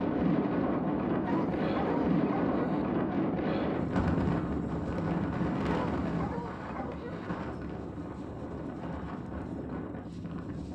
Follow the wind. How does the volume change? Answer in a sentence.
The volume of the wind goes down.